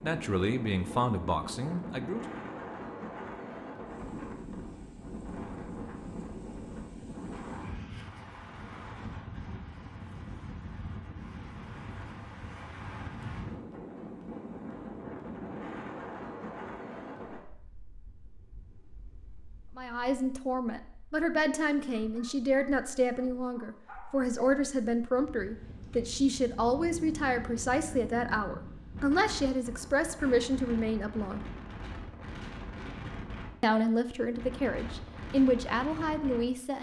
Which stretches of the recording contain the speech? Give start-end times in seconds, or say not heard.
0.0-2.3, 19.8-31.4, 33.6-36.7.